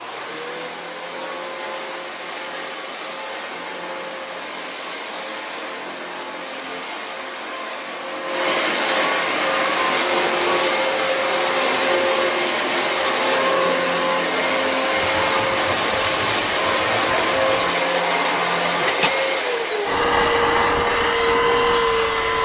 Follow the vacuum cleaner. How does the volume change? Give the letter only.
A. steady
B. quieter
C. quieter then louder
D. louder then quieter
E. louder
E.